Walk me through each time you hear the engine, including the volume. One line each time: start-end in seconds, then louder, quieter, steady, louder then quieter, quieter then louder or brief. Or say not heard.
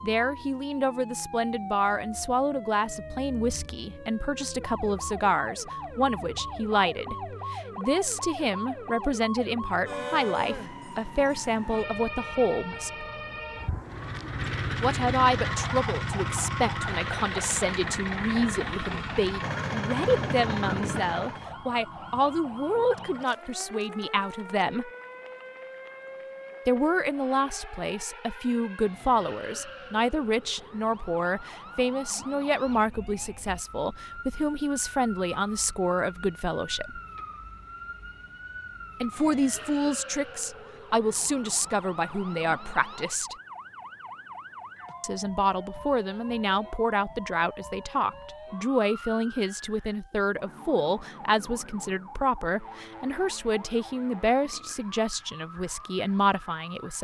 13.8-21.5 steady.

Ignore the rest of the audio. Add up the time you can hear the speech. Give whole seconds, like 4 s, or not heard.
50 s.